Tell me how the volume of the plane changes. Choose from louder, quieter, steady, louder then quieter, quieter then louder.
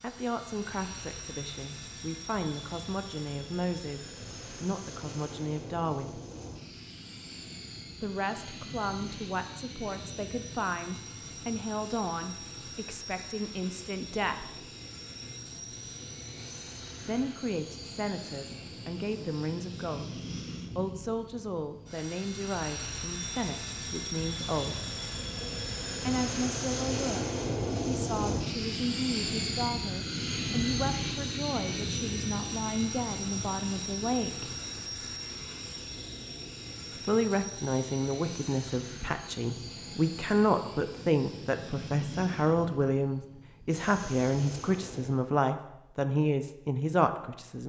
louder then quieter.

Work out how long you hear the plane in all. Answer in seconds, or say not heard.
45 s.